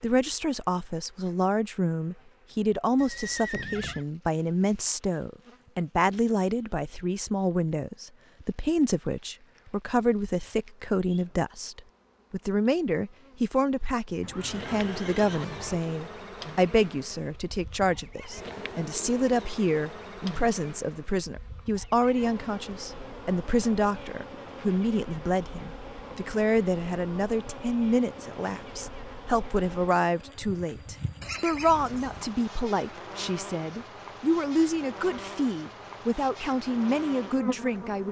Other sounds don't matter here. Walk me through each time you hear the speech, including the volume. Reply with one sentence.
You can hear the speech from 0.0 to 38.0 s, at a steady volume.